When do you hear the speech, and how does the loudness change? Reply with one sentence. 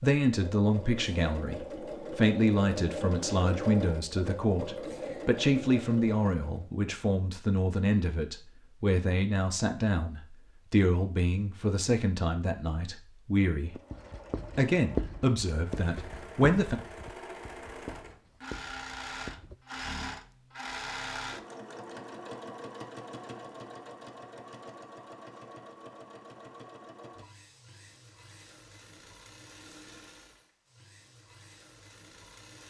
The speech can be heard from 0.0 to 13.8 s, at a steady volume; and briefly from 14.6 to 16.8 s.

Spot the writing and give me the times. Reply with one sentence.
The writing can be heard from 13.7 to 19.6 s.